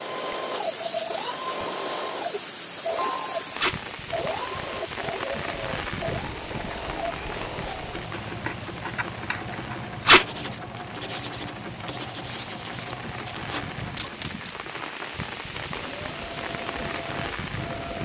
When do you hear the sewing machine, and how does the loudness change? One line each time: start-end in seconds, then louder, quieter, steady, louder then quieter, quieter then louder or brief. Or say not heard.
0.0-18.0 quieter.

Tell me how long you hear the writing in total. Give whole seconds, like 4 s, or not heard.
8 s.